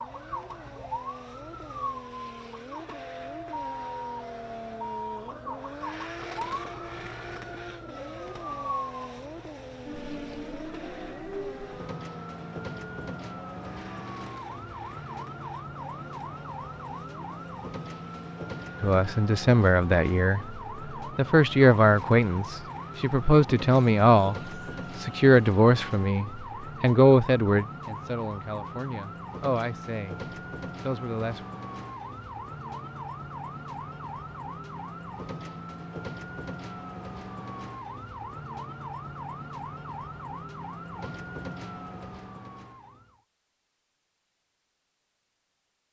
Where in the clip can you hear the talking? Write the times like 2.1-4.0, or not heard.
18.8-30.2, 30.8-31.4.